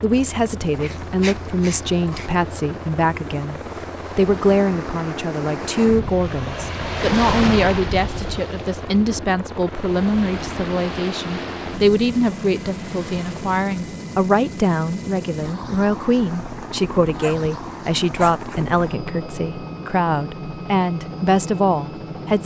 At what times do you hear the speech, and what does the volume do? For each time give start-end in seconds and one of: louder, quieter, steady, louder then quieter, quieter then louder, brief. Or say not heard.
0.0-22.4 steady.